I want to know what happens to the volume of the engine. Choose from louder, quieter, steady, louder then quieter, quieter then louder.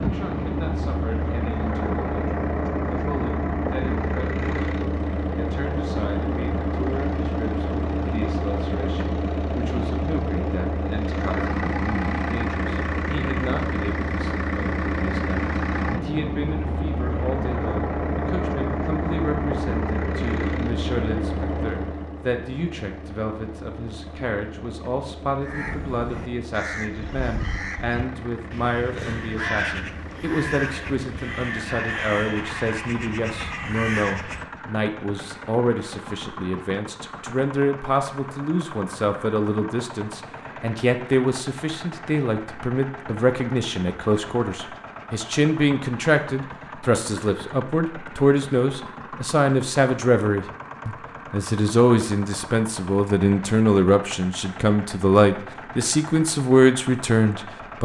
quieter.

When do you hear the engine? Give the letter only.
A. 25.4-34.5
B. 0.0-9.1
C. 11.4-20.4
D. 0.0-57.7
D.